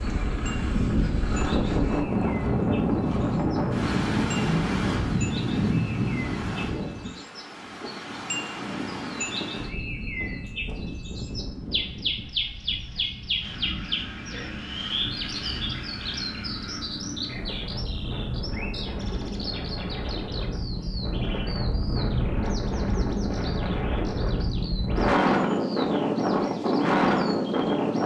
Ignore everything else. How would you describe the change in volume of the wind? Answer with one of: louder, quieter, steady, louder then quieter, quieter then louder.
quieter then louder.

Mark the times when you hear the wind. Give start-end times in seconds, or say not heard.
0.0-28.0.